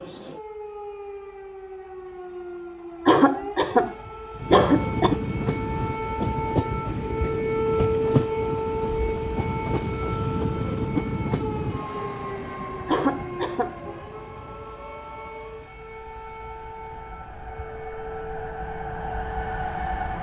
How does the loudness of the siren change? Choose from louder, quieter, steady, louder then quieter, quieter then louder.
louder then quieter.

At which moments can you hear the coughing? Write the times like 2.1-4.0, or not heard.
3.0-5.2, 12.8-13.8.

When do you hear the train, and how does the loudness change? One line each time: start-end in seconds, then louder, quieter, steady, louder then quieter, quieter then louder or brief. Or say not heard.
4.3-20.1 quieter then louder.